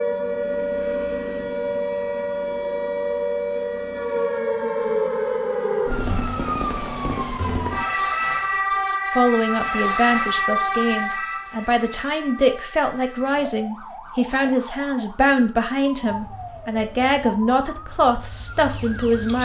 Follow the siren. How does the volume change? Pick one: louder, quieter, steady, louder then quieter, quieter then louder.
quieter.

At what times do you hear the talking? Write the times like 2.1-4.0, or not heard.
9.1-19.3.